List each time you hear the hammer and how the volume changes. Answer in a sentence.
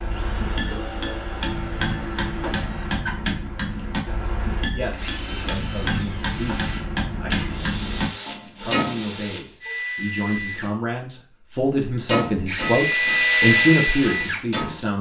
The hammer can be heard from 0.0 to 9.1 s, at a steady volume; and briefly from 12.1 to 14.8 s.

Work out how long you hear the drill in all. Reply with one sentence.
You can hear the drill for 15 seconds altogether.